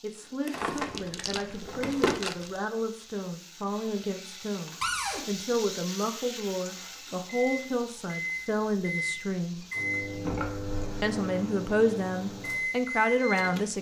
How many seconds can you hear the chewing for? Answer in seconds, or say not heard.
2 s.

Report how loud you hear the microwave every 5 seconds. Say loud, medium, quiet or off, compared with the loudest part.
off, loud, loud.